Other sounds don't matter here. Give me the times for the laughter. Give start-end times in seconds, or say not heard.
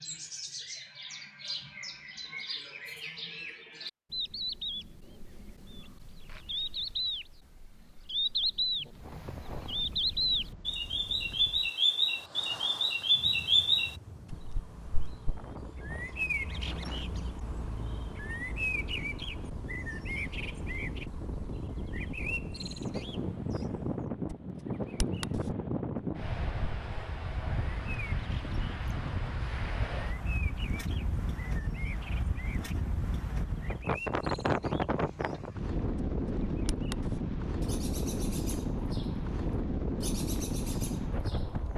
not heard.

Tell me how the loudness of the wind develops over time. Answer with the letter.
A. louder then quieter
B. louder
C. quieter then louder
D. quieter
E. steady
B.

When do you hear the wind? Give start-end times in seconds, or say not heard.
8.9-41.7.